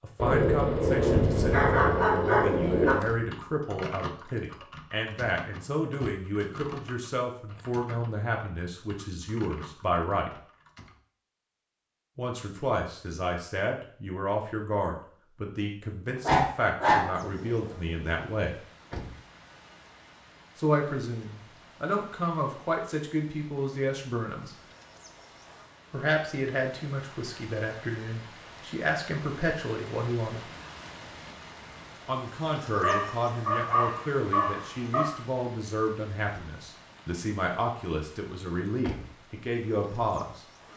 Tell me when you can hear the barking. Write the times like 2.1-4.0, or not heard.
0.1-3.0, 16.1-18.0, 32.8-35.1.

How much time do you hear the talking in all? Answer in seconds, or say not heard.
34 s.